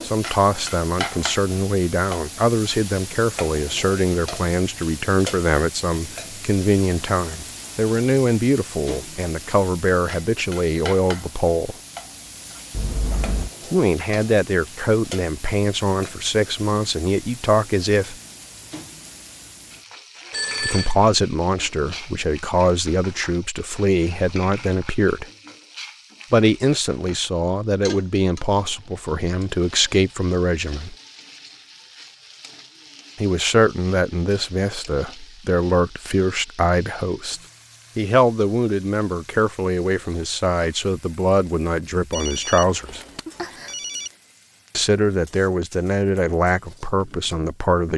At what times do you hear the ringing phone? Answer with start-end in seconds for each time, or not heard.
12.7-13.5, 20.3-20.9, 42.1-44.1.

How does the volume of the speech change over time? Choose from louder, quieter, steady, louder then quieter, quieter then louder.
steady.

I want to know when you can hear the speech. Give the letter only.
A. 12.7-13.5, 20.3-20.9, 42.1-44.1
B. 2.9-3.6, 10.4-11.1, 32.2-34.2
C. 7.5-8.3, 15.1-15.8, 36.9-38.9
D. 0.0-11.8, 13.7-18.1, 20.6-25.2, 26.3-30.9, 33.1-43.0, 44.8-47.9
D.